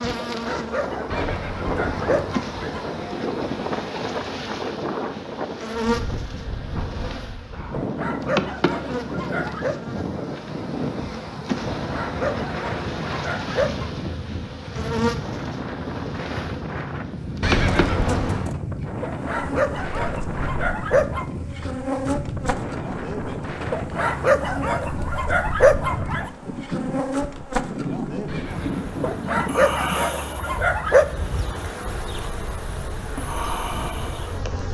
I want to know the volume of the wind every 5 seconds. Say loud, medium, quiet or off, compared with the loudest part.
loud, loud, loud, loud, loud, loud, medium.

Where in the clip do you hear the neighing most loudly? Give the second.
18 s.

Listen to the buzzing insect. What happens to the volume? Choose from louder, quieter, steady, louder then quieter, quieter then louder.
steady.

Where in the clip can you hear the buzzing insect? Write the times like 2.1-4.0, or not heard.
0.0-34.6.